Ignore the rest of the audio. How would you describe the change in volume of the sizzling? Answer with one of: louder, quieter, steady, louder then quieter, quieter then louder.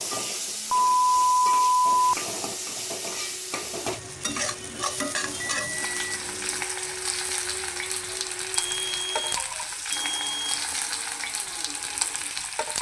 steady.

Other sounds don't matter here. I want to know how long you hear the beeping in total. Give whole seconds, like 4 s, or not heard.
5 s.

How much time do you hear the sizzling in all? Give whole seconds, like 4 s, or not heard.
13 s.